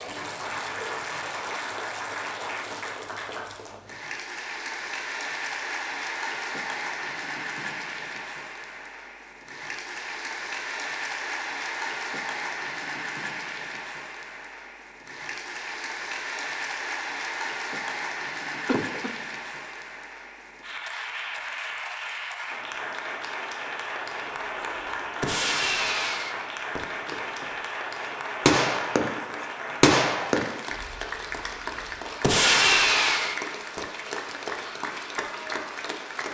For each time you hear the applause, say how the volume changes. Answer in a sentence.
You can hear the applause from 0.0 to 36.2 s, at a steady volume.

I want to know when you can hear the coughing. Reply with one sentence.
You can hear the coughing from 18.6 to 19.1 s.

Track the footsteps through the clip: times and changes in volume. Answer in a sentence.
The footsteps can't be heard in this clip.